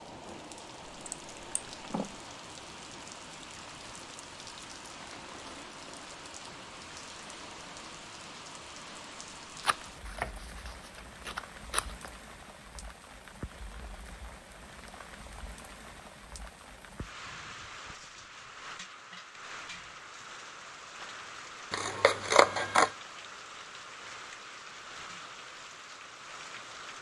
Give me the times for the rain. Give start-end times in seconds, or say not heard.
0.0-26.9.